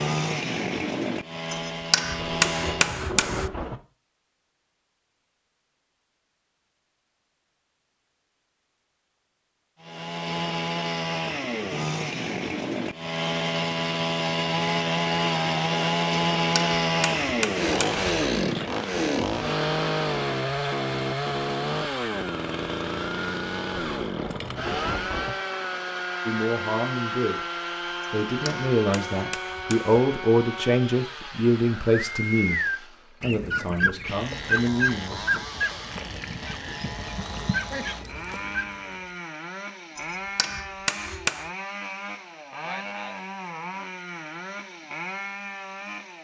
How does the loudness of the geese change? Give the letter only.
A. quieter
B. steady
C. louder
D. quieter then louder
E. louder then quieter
D.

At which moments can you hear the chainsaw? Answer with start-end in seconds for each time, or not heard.
0.0-3.0, 9.8-46.1.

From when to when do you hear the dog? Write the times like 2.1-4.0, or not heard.
not heard.